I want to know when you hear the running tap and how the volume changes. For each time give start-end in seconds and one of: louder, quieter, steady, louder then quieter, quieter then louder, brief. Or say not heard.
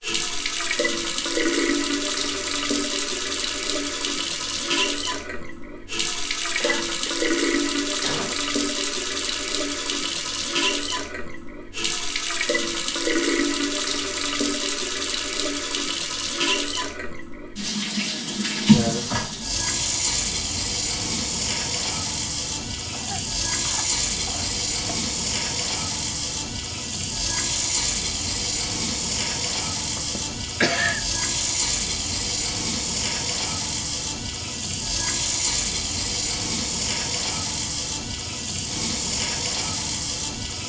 0.0-40.6 steady.